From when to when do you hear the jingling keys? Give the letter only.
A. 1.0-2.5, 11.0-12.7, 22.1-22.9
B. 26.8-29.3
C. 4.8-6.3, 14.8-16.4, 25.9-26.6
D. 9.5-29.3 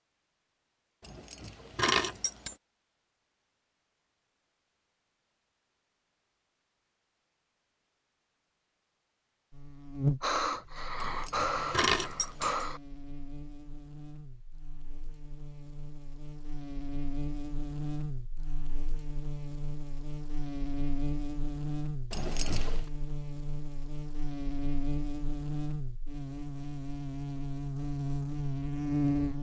A.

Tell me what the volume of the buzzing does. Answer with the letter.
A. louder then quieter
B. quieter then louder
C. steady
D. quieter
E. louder
B.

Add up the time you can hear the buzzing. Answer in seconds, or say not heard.
20 s.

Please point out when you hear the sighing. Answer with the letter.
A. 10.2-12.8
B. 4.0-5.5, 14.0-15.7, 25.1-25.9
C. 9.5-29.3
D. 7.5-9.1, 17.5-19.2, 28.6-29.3
A.